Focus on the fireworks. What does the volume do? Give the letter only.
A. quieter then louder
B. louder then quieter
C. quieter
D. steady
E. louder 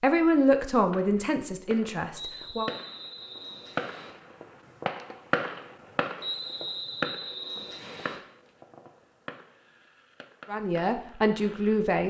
B.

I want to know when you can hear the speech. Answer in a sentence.
The speech can be heard from 0.0 to 2.7 s and from 10.4 to 12.0 s.